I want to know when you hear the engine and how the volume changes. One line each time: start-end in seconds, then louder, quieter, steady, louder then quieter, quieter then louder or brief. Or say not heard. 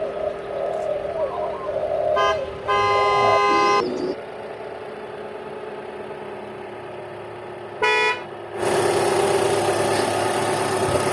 0.0-11.0 louder.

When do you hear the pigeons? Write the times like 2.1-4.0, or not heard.
0.0-4.2.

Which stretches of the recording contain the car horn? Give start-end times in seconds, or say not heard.
2.1-3.9, 7.8-8.2.